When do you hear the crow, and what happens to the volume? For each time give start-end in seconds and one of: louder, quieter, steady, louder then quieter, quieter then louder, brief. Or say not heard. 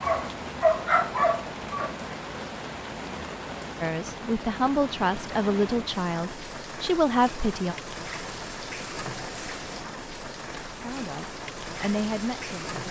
not heard.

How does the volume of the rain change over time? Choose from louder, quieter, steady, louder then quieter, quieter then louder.
steady.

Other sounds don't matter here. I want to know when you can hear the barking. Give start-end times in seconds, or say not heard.
0.0-1.9.